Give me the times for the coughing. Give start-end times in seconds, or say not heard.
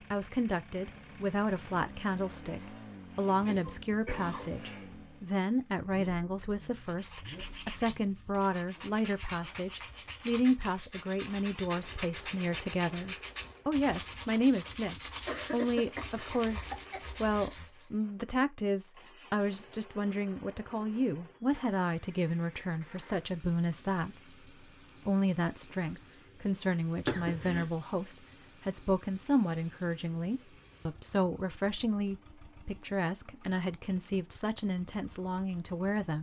3.4-5.0, 15.2-17.0, 27.1-27.7.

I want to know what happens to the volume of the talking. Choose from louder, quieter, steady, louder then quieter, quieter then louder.
steady.